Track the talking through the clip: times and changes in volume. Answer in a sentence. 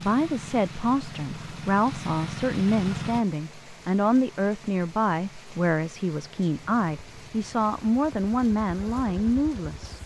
You can hear the talking from 0.0 to 10.0 s, at a steady volume.